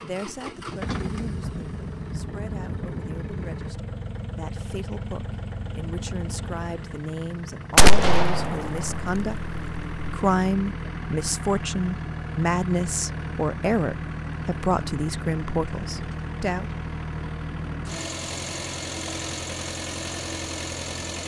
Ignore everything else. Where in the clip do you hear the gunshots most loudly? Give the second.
8 s.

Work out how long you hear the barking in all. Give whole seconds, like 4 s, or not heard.
not heard.